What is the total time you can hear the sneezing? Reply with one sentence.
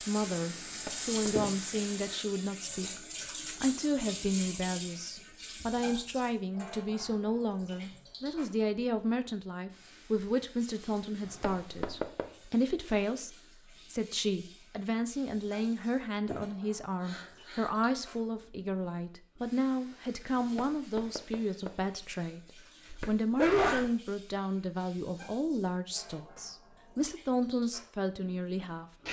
The sneezing can be heard for 3 seconds in total.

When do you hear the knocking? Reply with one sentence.
The knocking can be heard from 0.7 to 1.5 s, from 11.2 to 12.4 s and from 20.4 to 21.9 s.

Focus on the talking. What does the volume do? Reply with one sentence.
The volume of the talking stays about the same.